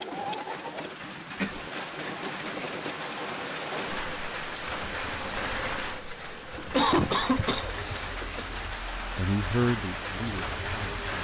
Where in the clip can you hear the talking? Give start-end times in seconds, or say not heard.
9.2-11.1.